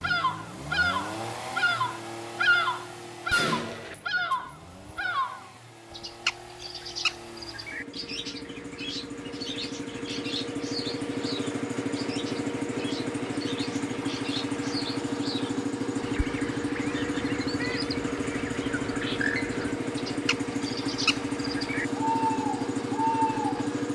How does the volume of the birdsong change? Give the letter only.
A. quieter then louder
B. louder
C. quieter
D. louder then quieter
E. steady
A.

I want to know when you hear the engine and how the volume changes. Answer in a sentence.
The engine can be heard from 0.0 to 23.8 s, getting louder.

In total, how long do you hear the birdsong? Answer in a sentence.
You can hear the birdsong for 24 seconds altogether.